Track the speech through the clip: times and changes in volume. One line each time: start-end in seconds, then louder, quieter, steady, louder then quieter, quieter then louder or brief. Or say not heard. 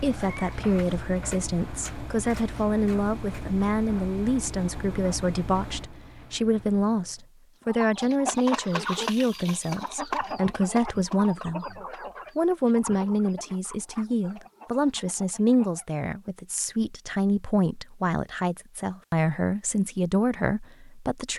0.0-21.3 steady.